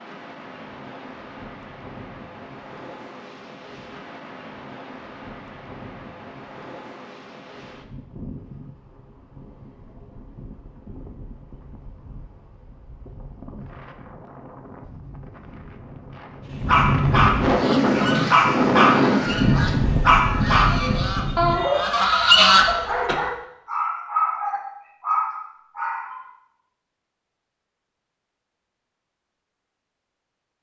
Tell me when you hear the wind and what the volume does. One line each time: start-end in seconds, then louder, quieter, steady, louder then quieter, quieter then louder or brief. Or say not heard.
0.0-21.6 quieter then louder.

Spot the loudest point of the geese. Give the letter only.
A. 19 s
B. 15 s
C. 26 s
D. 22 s
D.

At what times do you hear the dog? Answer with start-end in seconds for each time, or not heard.
16.4-26.2.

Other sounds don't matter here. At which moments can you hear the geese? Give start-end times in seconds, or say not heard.
17.6-23.1.